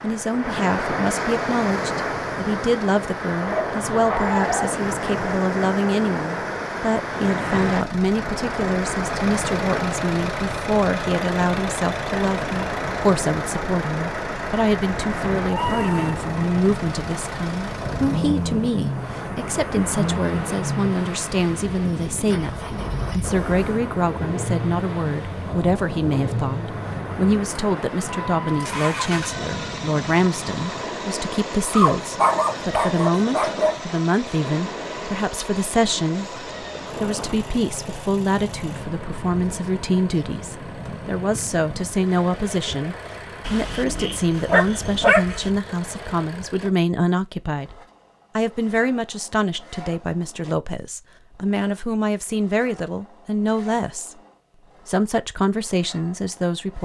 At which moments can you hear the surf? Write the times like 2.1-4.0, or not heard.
0.0-46.6.